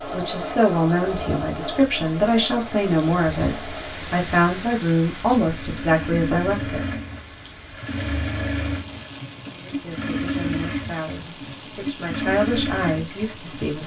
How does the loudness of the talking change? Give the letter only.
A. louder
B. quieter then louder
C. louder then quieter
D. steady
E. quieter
B.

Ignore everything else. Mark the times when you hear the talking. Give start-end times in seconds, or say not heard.
0.1-6.8, 9.5-13.8.